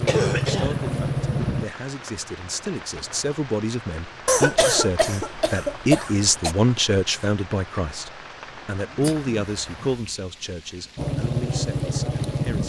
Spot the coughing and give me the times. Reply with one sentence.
The coughing can be heard from 0.1 to 0.8 s, from 4.2 to 6.5 s and from 9.0 to 9.9 s.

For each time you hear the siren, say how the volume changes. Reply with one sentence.
You can't hear the siren here.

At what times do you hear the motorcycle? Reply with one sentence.
You can hear the motorcycle from 0.0 to 1.6 s and from 10.9 to 12.6 s.